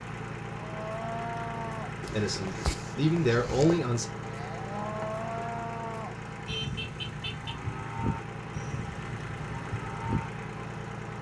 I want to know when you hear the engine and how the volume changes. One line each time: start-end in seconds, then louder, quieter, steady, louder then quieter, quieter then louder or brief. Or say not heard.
0.0-11.1 steady.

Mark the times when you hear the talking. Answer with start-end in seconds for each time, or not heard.
2.1-4.0.